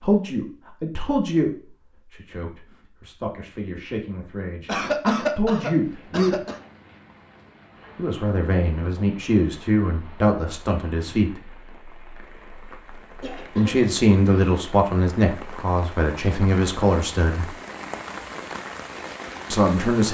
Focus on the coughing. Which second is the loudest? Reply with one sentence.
The volume of the coughing peaks at 5 seconds.